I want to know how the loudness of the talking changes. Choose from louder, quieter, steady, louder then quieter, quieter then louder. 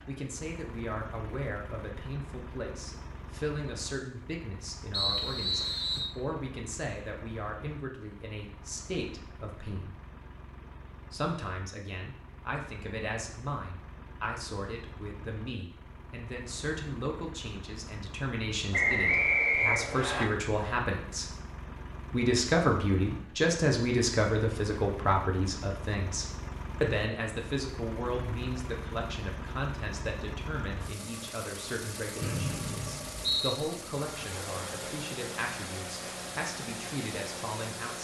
louder then quieter.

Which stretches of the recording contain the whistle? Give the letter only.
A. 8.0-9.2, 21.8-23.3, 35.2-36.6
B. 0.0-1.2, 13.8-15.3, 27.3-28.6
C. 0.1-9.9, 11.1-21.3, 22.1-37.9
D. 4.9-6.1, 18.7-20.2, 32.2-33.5
D.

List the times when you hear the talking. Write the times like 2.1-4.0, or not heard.
0.1-9.9, 11.1-21.3, 22.1-37.9.